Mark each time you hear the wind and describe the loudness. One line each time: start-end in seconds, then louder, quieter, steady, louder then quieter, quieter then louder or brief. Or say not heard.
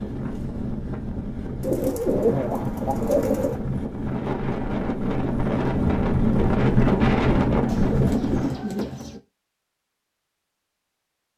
0.0-8.7 louder.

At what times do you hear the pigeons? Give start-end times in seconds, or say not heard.
1.6-3.6, 7.7-9.2.